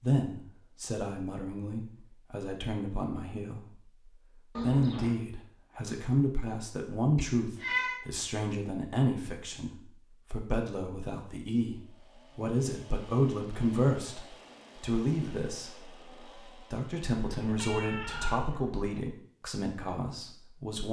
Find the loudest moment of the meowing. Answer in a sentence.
The loudest moment of the meowing is at 8 seconds.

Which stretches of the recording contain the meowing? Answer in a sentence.
The meowing can be heard from 4.5 to 5.2 s, from 7.2 to 8.0 s and from 17.3 to 18.9 s.